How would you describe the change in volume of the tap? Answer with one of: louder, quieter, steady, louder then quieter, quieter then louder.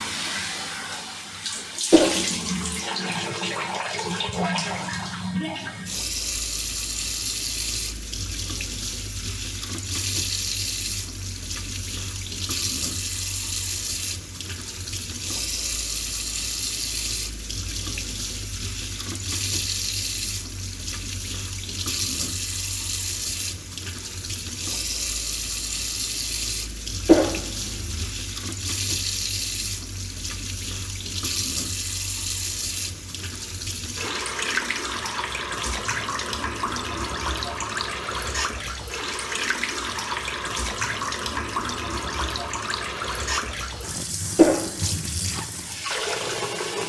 steady.